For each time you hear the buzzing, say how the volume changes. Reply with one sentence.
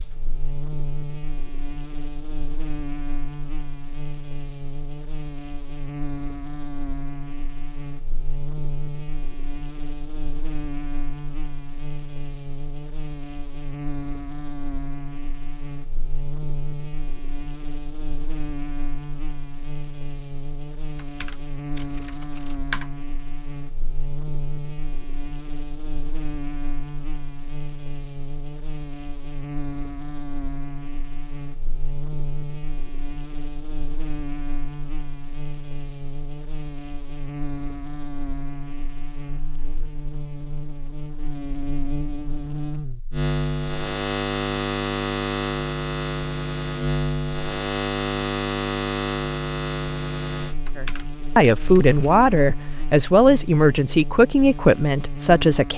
You can hear the buzzing from 0.0 to 55.7 s, getting louder.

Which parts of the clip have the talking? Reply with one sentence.
You can hear the talking from 50.8 to 55.7 s.